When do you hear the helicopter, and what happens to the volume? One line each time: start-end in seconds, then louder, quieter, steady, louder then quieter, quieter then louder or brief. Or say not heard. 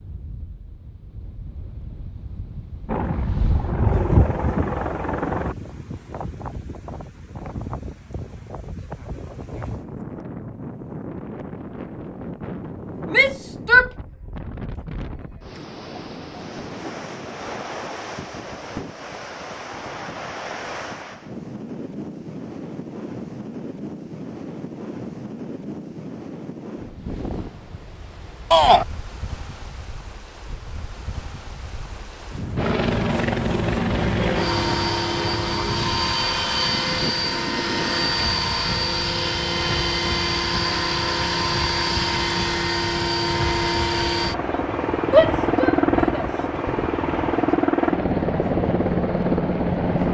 2.9-5.5 brief
32.5-50.0 steady.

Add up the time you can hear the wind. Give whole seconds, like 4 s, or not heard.
50 s.